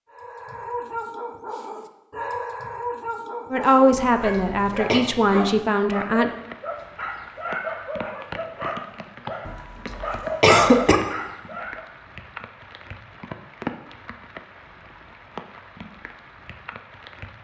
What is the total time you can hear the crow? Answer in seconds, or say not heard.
not heard.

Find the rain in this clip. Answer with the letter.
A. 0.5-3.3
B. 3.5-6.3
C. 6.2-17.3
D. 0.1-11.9
C.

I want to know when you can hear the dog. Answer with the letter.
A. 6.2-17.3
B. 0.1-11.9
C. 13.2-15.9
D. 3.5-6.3
B.